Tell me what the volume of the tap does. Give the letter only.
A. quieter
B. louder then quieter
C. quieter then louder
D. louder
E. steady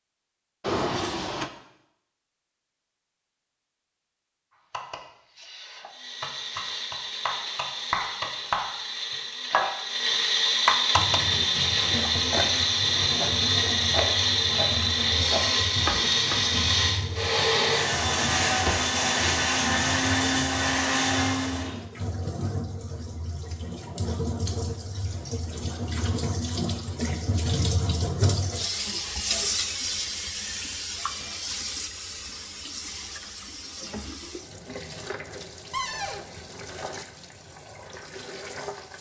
B.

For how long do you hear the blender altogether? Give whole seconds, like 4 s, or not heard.
16 s.